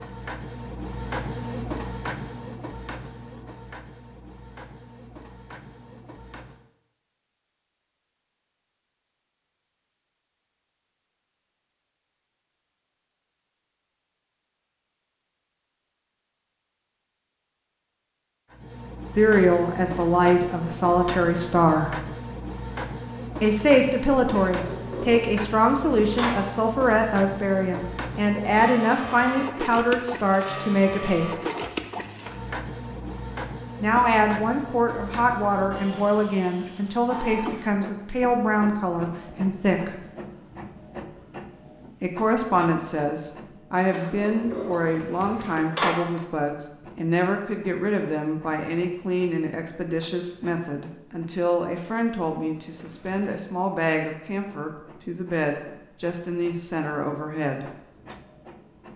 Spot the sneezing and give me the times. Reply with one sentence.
The sneezing can't be heard in this clip.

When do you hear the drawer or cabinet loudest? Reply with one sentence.
The volume of the drawer or cabinet peaks at 46 seconds.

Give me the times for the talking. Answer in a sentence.
You can hear the talking from 19.1 to 21.9 s, from 23.4 to 31.4 s, from 33.8 to 40.0 s and from 42.0 to 57.7 s.